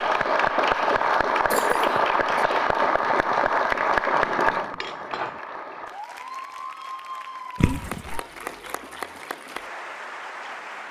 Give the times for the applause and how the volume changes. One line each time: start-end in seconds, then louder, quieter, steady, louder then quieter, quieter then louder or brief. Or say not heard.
0.0-10.8 quieter.